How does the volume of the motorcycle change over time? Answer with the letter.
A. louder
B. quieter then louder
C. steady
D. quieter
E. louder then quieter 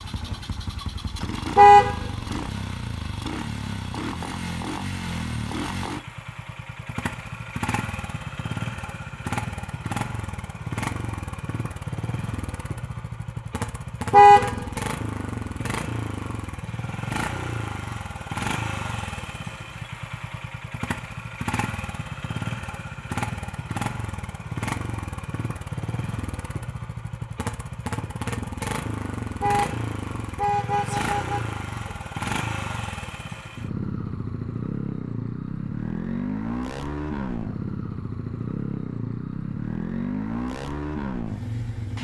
C.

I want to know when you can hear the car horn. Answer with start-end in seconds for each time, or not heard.
1.6-2.4, 14.1-14.7, 29.4-31.9.